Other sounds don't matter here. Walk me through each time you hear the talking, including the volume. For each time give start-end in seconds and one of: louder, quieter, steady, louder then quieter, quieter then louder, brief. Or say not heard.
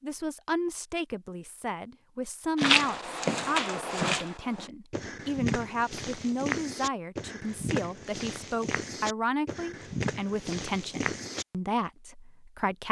0.0-12.8 steady.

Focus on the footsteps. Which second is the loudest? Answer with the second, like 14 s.
3 s.